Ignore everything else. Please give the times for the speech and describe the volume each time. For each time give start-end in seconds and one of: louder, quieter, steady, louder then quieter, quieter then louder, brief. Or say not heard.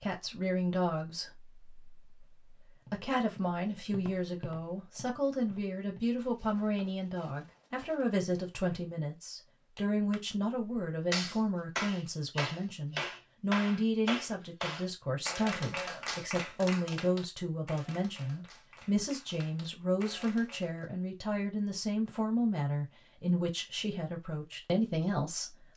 0.0-25.7 steady.